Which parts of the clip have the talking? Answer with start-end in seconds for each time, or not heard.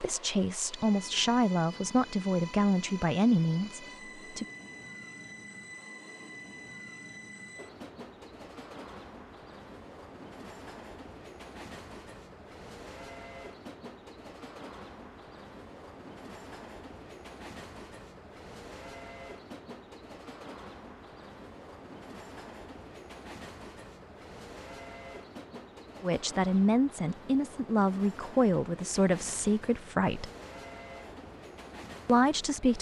0.0-4.5, 26.0-30.3, 32.0-32.7.